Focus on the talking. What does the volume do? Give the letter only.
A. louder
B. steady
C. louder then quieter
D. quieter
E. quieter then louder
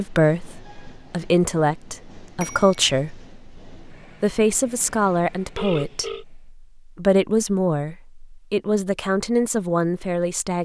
B.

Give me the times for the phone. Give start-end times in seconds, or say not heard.
2.4-2.9, 5.5-6.2.